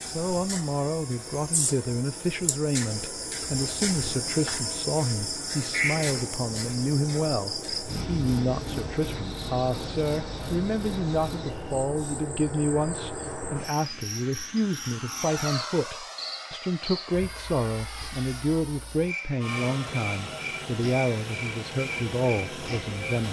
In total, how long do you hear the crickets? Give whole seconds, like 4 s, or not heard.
23 s.